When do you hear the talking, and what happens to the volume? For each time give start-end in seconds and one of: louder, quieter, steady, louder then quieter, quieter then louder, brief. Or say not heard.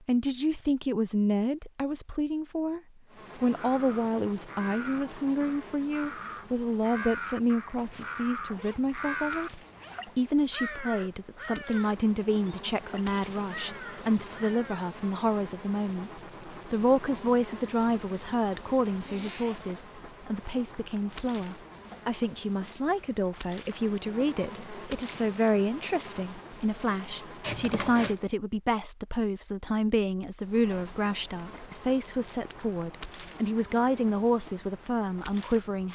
0.1-35.9 steady.